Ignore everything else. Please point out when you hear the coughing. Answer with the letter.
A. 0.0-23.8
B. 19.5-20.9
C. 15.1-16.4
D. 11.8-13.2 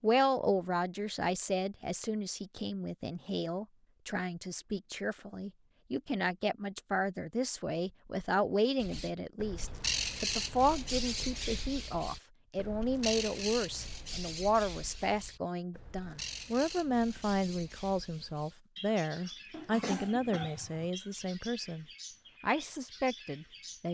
B.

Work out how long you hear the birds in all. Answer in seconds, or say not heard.
15 s.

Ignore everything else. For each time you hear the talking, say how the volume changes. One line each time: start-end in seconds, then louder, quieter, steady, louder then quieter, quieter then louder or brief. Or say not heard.
0.0-23.8 steady.